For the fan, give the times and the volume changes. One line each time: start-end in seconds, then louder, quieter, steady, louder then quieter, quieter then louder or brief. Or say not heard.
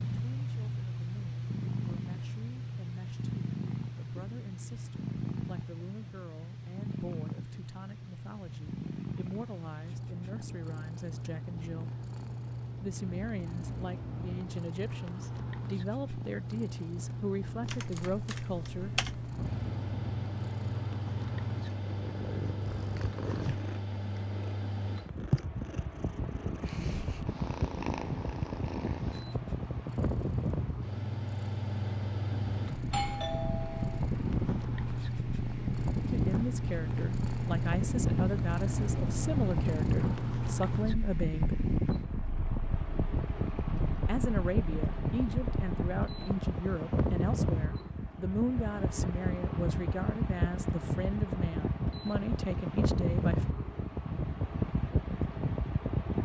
19.4-56.2 louder.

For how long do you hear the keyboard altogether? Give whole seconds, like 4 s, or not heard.
2 s.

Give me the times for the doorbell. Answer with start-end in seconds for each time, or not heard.
32.9-34.0.